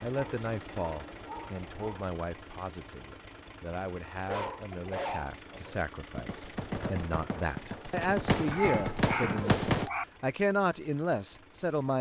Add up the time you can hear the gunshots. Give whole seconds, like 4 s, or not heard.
4 s.